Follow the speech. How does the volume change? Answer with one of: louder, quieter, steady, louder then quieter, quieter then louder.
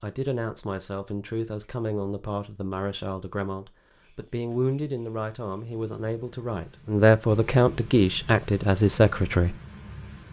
louder.